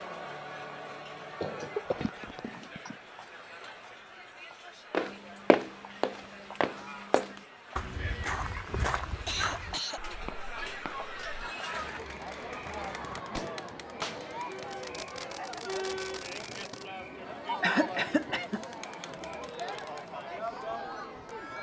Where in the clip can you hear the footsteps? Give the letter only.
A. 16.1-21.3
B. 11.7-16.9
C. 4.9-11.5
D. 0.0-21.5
C.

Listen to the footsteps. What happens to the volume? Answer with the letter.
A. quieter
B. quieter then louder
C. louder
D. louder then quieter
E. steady
A.